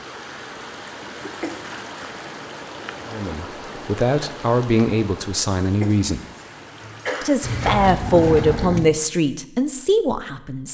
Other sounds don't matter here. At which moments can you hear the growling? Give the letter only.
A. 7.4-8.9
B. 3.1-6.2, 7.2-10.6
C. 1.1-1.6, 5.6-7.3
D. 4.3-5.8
A.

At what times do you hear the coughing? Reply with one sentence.
The coughing can be heard from 1.1 to 1.6 s and from 5.6 to 7.3 s.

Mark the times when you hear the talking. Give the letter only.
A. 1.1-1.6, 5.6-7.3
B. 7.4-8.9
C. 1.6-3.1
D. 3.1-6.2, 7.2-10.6
D.